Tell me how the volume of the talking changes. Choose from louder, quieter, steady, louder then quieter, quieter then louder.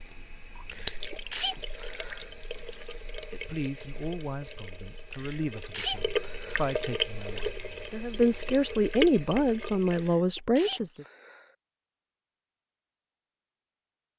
louder.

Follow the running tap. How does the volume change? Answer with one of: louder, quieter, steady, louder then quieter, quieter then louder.
quieter then louder.